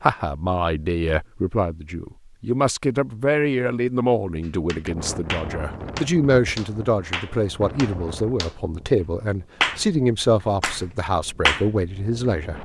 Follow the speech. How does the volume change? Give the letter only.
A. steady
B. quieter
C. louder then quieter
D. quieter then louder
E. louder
A.